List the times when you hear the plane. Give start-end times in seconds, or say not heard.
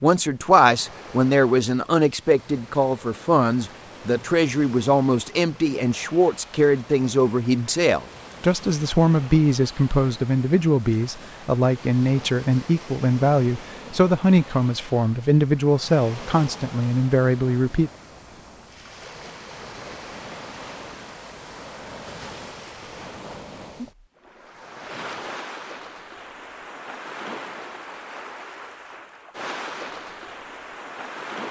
not heard.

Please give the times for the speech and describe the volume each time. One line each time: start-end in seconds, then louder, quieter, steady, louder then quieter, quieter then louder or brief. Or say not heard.
0.0-17.9 steady.